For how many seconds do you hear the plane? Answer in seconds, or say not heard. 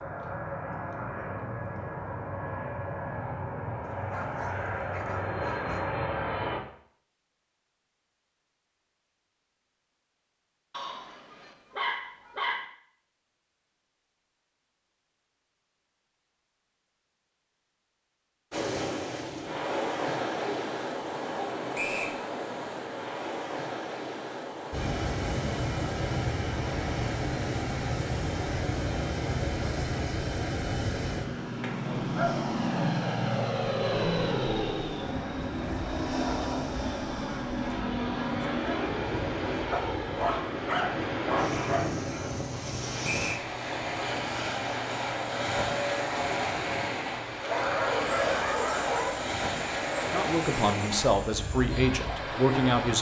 35 s.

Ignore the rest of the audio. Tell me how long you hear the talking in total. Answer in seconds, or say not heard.
3 s.